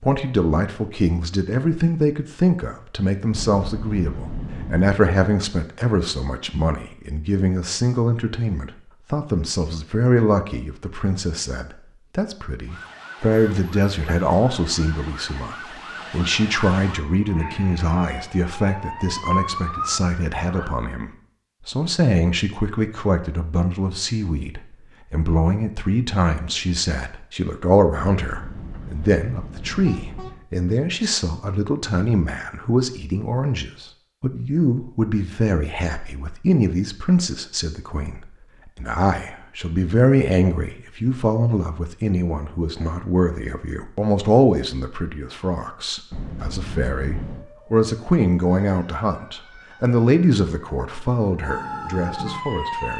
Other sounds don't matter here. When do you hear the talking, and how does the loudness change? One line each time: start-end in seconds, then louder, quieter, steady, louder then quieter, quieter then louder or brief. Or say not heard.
0.0-52.9 steady.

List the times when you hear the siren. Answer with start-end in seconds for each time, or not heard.
12.7-20.8, 47.2-52.9.